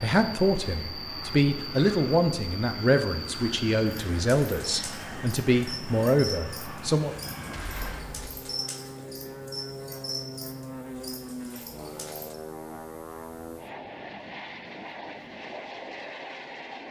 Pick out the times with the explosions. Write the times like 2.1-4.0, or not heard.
7.5-8.4.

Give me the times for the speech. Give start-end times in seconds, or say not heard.
0.0-7.2.